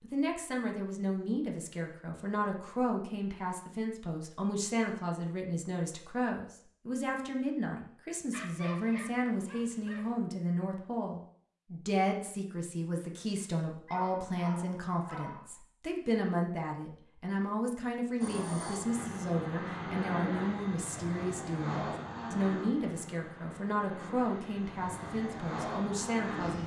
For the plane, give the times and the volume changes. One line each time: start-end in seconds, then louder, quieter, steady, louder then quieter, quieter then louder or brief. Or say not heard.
18.2-26.6 quieter then louder.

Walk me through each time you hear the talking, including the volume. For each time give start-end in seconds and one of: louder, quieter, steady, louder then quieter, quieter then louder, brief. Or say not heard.
0.0-26.6 steady.